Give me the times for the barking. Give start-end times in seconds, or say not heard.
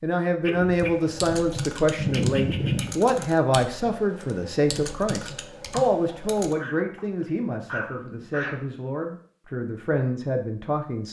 0.4-3.0, 5.7-8.6.